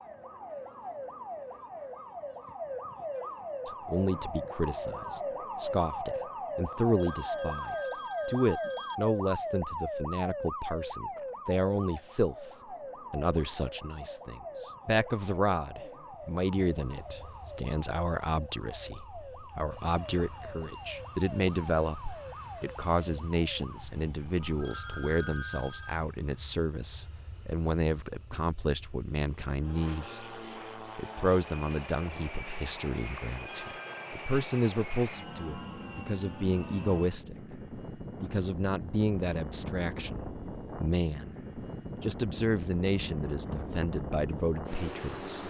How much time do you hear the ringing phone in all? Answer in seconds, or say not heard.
4 s.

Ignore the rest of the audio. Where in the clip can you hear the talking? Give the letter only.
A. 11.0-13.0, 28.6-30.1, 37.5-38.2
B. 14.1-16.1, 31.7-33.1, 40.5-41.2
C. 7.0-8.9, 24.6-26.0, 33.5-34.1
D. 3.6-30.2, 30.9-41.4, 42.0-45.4
D.